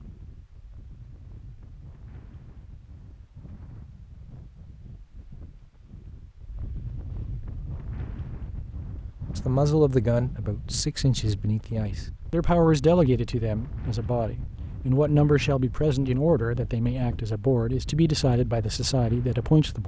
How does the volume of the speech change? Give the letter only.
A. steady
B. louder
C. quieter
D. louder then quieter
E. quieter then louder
A.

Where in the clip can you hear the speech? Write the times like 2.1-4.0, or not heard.
9.3-19.8.